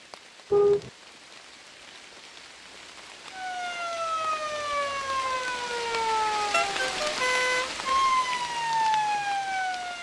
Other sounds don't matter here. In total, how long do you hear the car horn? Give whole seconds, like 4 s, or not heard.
2 s.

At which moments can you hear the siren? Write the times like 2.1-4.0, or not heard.
3.3-9.9.